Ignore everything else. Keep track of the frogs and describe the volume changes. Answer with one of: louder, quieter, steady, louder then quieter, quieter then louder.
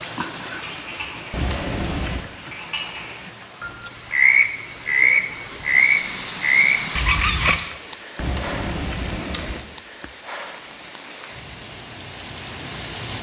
louder.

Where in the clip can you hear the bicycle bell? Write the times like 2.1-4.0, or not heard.
1.3-2.2, 8.2-9.7.